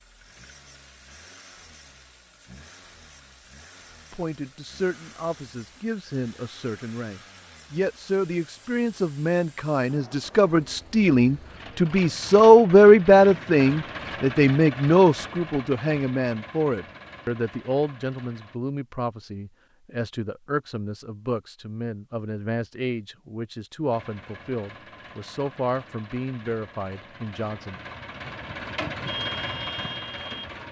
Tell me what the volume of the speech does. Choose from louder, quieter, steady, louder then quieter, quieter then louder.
louder then quieter.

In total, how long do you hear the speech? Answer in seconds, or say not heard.
24 s.